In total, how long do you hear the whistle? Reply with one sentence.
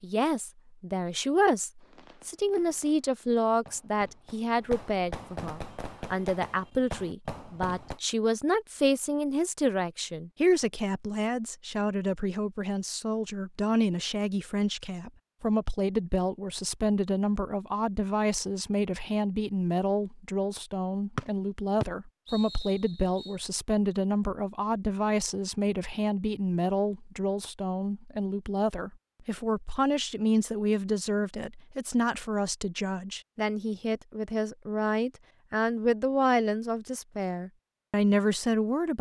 The whistle can be heard for 2 seconds in total.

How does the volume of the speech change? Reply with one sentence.
The loudness of the speech stays about the same.